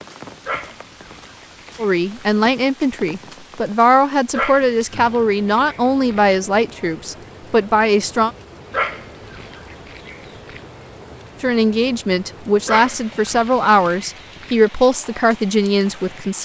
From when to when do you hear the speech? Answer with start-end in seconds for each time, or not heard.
1.8-8.3, 11.4-16.4.